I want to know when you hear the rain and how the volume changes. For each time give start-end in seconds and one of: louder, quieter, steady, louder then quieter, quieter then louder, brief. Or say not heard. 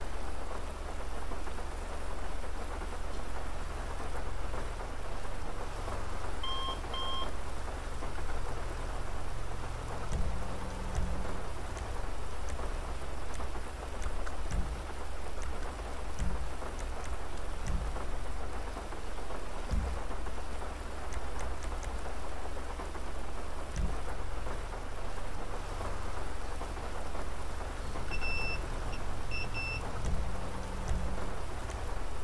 0.0-32.2 steady.